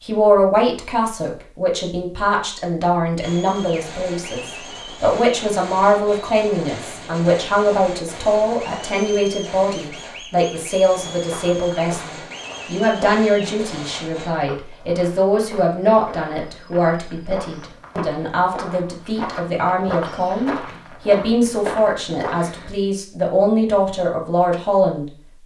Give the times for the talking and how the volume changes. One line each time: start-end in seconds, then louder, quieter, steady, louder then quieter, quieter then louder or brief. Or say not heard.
0.0-25.4 steady.